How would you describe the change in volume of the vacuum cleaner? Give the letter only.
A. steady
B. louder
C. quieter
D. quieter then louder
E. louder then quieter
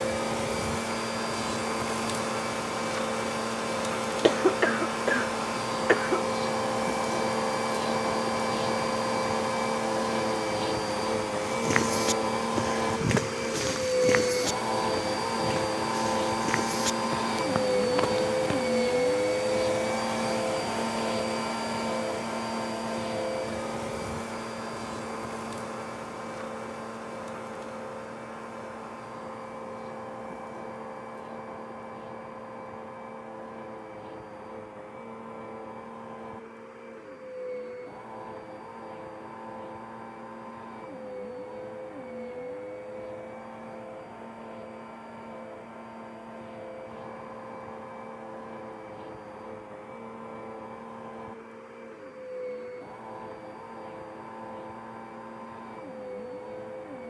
C.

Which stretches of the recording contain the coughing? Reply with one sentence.
The coughing can be heard from 4.2 to 6.2 s.